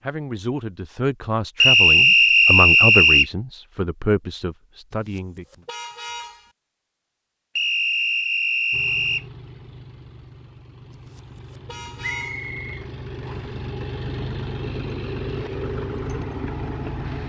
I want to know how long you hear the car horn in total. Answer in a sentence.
You can hear the car horn for 3 seconds altogether.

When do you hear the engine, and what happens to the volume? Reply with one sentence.
You can hear the engine from 8.7 to 17.2 s, getting louder.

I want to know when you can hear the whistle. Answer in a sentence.
The whistle can be heard from 1.6 to 3.2 s, from 7.5 to 9.2 s and from 12.0 to 13.6 s.